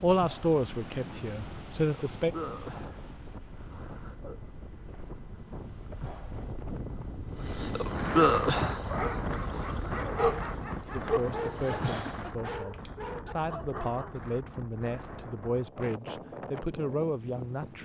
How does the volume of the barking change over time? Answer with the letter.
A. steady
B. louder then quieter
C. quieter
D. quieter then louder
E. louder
B.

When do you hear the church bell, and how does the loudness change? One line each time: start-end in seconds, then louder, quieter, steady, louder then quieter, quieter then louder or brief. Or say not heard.
not heard.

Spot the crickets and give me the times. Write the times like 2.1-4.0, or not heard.
0.0-12.3.